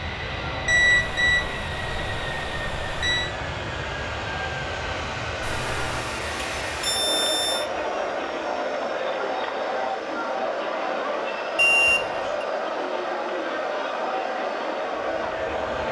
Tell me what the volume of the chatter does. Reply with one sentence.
The loudness of the chatter goes up.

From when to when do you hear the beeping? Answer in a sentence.
The beeping can be heard from 0.7 to 3.3 s, from 5.4 to 7.7 s and from 11.6 to 12.4 s.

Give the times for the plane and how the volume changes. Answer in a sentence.
The plane can be heard from 0.0 to 15.8 s, getting quieter.